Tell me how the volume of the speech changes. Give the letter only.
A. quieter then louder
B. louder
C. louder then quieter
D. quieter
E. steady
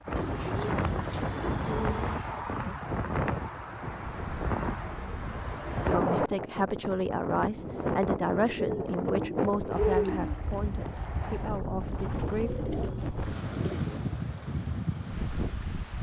D.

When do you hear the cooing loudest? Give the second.
10 s.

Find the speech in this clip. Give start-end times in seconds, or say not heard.
5.8-12.5.